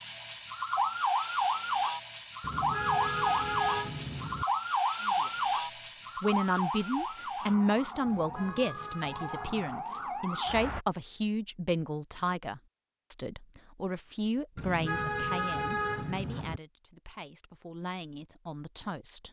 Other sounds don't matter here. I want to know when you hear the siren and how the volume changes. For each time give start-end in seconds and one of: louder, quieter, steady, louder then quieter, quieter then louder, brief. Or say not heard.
0.0-10.8 quieter.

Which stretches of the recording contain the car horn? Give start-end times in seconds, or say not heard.
2.4-4.5, 8.1-9.8, 14.6-16.6.